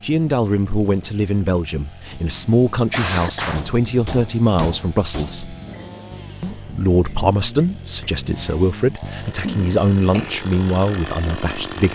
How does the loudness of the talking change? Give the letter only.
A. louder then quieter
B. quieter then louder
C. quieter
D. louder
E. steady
E.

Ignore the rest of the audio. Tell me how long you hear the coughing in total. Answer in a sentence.
The coughing can be heard for 2 seconds in total.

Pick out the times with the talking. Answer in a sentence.
You can hear the talking from 0.0 to 5.5 s and from 6.4 to 11.9 s.